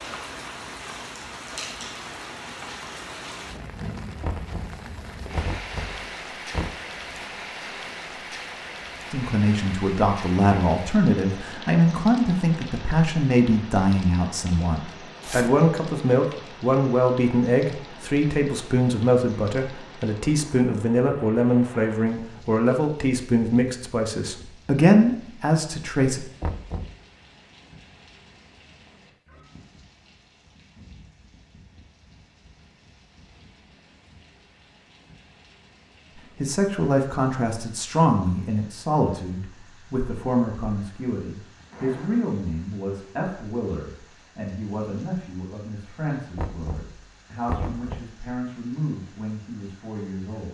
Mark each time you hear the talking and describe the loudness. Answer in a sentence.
The talking can be heard from 9.1 to 26.2 s, at a steady volume; and from 36.4 to 50.4 s, getting quieter.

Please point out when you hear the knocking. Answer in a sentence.
The knocking can be heard from 4.2 to 6.8 s, from 26.4 to 26.9 s and from 46.4 to 48.0 s.